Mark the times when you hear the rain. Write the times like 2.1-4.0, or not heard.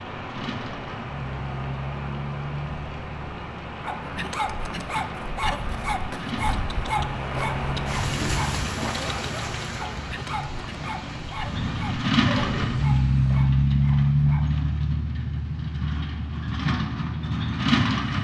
0.0-13.3.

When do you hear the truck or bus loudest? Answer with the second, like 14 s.
14 s.